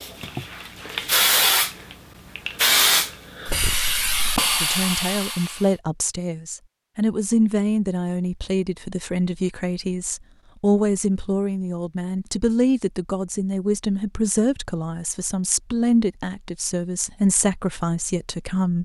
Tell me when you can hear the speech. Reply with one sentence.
You can hear the speech from 4.6 to 18.8 s.